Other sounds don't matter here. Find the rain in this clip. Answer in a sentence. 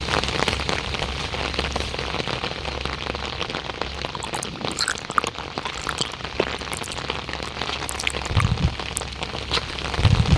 You can hear the rain from 0.0 to 10.3 s.